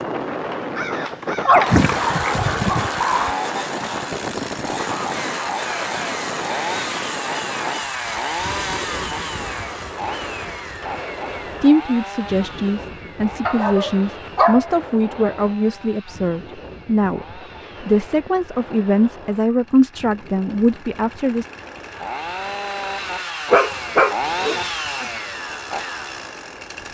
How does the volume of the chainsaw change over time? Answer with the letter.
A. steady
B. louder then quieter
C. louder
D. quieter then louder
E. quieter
D.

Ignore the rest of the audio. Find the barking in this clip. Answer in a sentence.
You can hear the barking from 1.4 to 3.3 s, from 13.4 to 14.7 s and from 23.5 to 25.1 s.